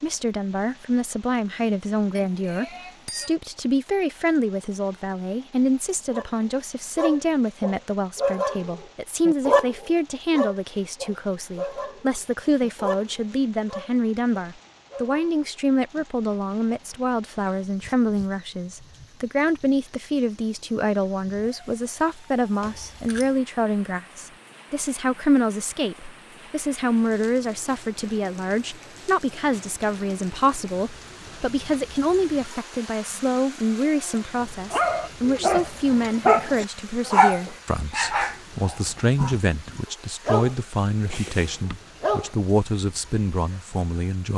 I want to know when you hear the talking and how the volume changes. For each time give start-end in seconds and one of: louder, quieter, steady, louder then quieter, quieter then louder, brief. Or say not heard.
0.0-44.3 steady.